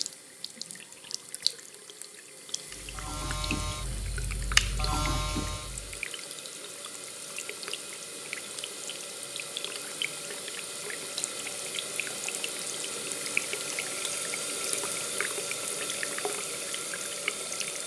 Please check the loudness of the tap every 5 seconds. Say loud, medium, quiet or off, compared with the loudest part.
medium, medium, loud, loud.